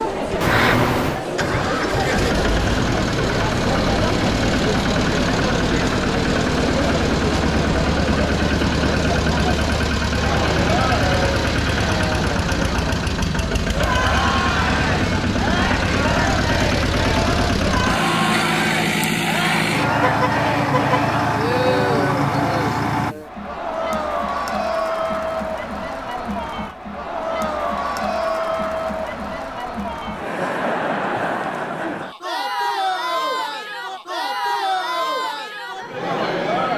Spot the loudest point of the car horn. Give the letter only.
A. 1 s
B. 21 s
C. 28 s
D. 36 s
A.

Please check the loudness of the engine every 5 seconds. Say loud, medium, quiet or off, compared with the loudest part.
loud, loud, loud, loud, loud, off, off, off.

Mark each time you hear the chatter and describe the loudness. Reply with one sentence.
The chatter can be heard from 0.0 to 36.7 s, at a steady volume.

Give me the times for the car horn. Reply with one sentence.
You can hear the car horn from 0.4 to 1.2 s and from 20.0 to 21.0 s.